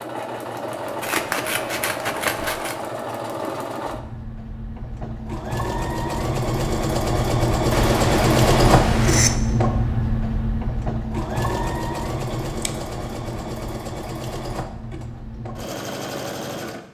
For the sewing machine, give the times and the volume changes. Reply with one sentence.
You can hear the sewing machine from 0.0 to 16.8 s, getting louder then quieter.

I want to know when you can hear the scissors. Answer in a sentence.
You can hear the scissors from 1.0 to 2.8 s, from 7.7 to 9.4 s and from 12.4 to 13.6 s.